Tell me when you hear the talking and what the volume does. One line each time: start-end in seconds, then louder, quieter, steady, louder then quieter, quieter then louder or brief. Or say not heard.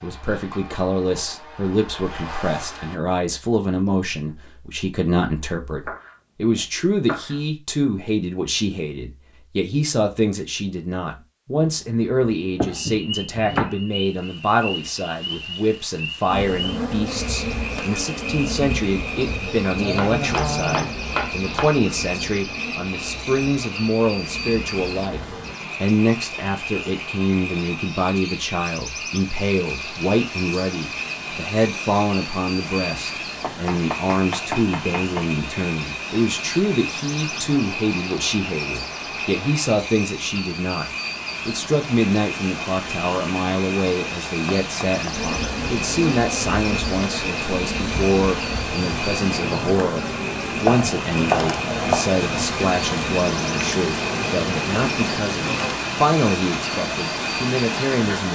0.0-25.2 steady
25.8-58.3 steady.